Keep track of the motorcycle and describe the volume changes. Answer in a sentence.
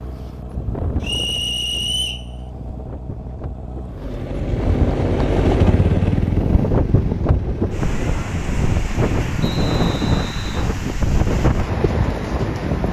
The loudness of the motorcycle goes up, then down.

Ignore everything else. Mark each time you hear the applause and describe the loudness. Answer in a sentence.
You can't hear the applause here.